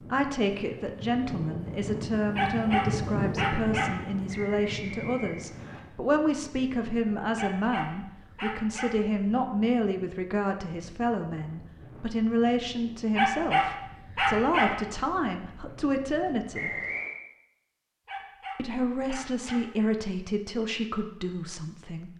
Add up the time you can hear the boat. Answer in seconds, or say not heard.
not heard.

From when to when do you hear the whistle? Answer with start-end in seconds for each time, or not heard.
4.2-5.8, 16.5-17.2.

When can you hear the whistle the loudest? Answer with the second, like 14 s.
17 s.